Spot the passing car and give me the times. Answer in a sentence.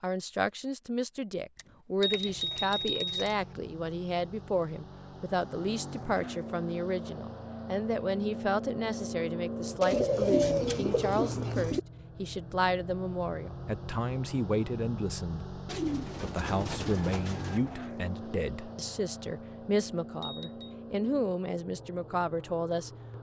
The passing car can be heard from 2.0 to 23.1 s.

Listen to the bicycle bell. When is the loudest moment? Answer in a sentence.
The loudest moment of the bicycle bell is at 3 seconds.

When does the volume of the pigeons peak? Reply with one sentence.
The volume of the pigeons peaks at 10 seconds.